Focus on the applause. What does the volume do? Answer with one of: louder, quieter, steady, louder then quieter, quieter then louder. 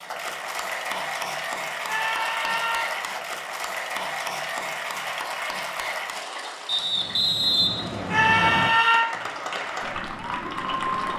quieter then louder.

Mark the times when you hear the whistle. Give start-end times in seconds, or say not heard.
6.7-8.7.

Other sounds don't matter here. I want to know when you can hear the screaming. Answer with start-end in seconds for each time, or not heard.
1.9-2.9, 8.1-9.1.